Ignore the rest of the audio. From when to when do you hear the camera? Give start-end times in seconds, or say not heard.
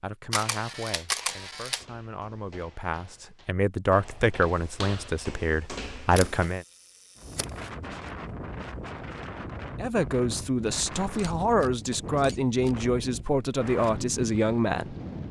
0.3-1.9, 6.2-7.7, 11.0-12.8.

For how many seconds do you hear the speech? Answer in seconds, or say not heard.
12 s.